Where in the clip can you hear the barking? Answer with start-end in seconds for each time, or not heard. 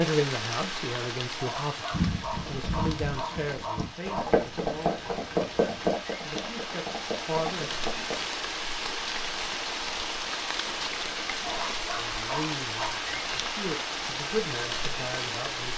1.4-4.3, 11.4-12.9.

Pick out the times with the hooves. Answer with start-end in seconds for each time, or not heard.
1.9-8.2.